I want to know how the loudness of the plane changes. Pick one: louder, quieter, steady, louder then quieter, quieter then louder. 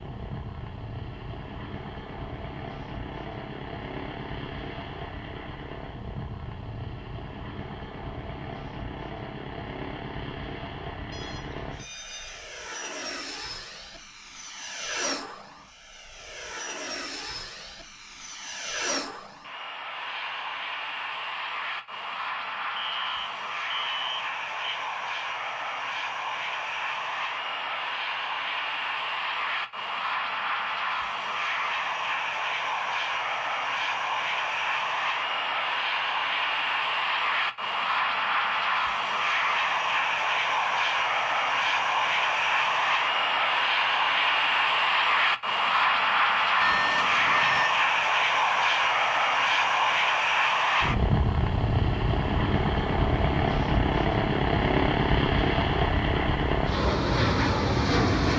louder.